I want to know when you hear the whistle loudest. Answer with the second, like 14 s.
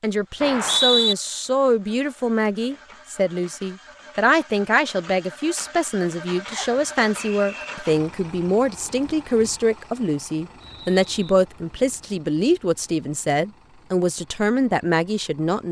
1 s.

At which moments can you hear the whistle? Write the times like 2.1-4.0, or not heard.
0.4-1.1, 6.5-7.8, 10.6-11.1.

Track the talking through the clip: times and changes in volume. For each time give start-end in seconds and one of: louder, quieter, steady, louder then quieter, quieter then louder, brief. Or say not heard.
0.0-15.6 steady.